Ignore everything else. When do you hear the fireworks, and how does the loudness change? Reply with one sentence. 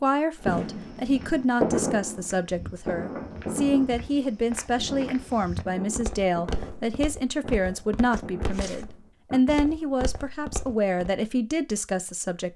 The fireworks can be heard from 0.3 to 9.4 s, getting quieter.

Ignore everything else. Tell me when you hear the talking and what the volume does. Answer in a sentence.
The talking can be heard from 0.0 to 12.5 s, at a steady volume.